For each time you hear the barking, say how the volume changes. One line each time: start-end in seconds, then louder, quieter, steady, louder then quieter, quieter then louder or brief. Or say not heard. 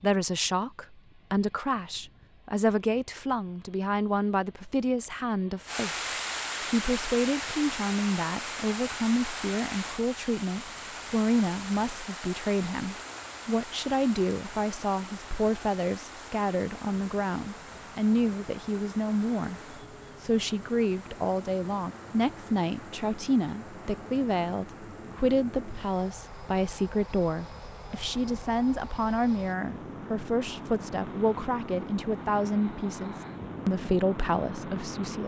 not heard.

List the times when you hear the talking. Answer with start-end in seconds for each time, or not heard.
0.0-35.2.